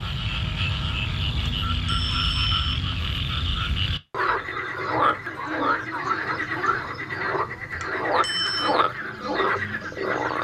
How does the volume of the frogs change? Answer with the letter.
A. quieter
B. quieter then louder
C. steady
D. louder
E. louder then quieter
C.